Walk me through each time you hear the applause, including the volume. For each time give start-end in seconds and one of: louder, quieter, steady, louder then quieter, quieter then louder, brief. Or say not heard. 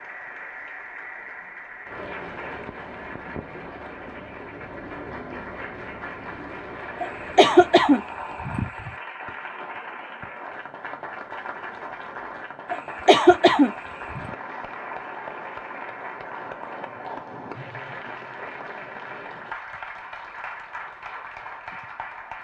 0.0-22.3 steady.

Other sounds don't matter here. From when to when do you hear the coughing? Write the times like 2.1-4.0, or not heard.
7.0-8.9, 12.7-14.3.